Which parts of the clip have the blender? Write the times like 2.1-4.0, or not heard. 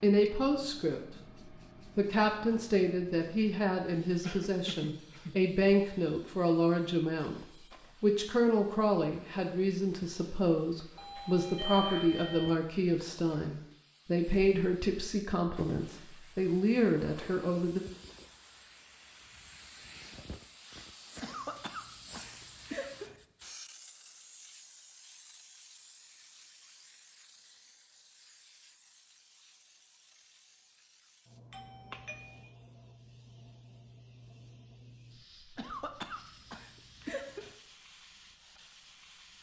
not heard.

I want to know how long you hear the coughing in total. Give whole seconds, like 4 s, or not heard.
5 s.